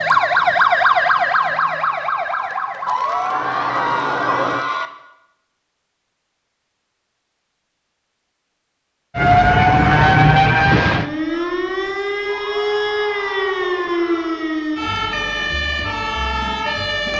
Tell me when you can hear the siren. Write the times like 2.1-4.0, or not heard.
0.0-4.7, 9.2-17.1.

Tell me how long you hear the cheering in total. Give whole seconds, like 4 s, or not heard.
4 s.